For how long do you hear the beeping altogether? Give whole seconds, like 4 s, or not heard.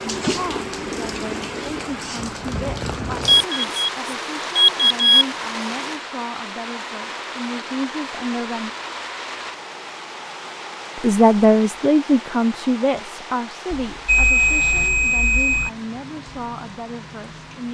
4 s.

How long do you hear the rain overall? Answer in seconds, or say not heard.
18 s.